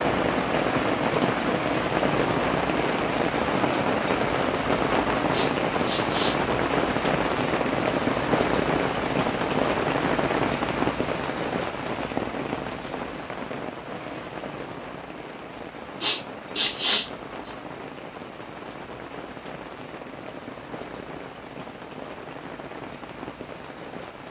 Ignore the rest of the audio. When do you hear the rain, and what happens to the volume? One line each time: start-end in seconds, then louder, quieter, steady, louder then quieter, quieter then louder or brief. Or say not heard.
0.0-24.2 quieter.